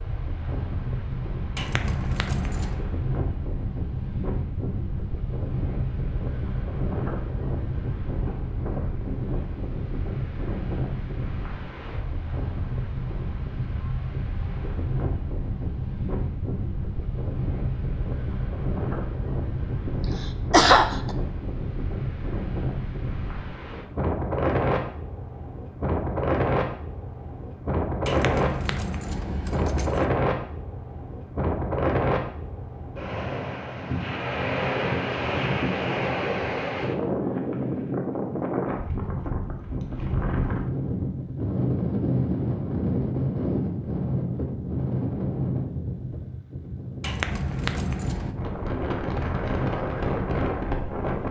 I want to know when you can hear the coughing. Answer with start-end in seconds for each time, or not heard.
19.9-21.1.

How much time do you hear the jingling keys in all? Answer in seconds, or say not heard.
5 s.